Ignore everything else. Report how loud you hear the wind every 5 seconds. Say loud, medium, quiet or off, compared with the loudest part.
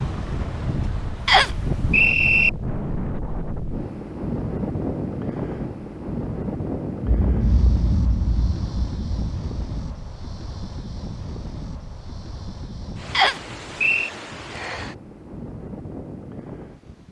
loud, loud, medium, medium.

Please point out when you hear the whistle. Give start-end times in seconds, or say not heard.
1.2-2.5, 13.1-14.1.